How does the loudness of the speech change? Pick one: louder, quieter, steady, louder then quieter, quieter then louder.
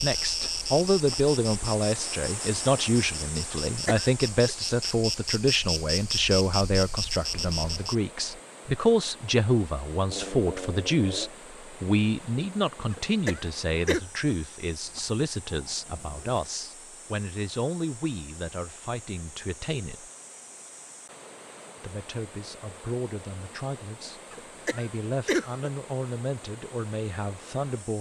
quieter.